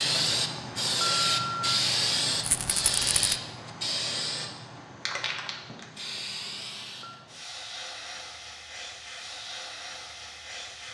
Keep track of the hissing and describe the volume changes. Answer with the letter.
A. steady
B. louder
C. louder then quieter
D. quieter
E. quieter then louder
D.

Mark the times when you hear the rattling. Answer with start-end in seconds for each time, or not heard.
2.4-3.4.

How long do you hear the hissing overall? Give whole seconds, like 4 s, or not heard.
11 s.